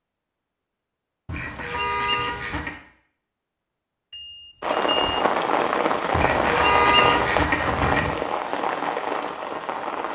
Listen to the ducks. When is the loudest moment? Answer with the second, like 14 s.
7 s.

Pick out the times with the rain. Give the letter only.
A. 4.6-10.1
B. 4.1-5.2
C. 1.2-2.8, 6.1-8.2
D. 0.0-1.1
A.